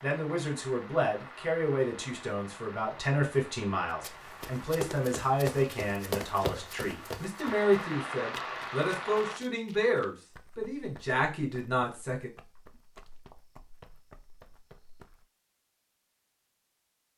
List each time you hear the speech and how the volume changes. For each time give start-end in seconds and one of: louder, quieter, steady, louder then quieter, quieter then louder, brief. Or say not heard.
0.0-12.3 steady.